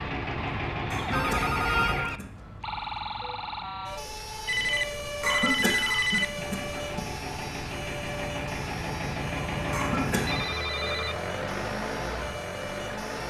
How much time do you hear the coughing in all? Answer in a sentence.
The coughing can be heard for 4 seconds in total.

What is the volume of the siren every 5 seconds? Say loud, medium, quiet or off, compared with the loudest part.
loud, loud, medium.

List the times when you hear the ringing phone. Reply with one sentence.
You can hear the ringing phone from 1.1 to 2.2 s, from 4.5 to 6.5 s and from 10.2 to 11.2 s.